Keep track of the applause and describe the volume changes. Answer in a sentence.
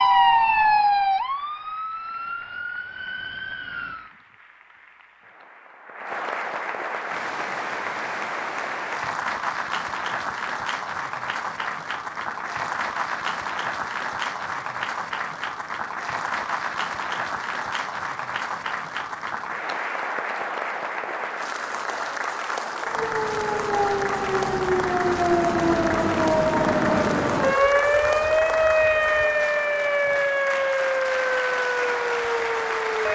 The loudness of the applause goes up.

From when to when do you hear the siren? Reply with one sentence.
The siren can be heard from 0.0 to 4.1 s and from 22.8 to 33.1 s.